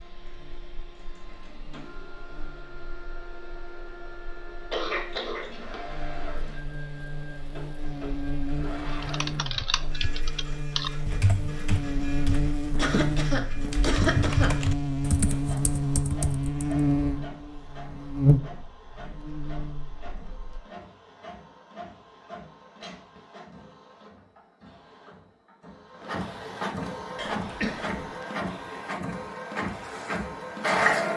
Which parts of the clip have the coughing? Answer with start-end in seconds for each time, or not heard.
4.7-6.6, 12.8-14.5, 27.1-28.0.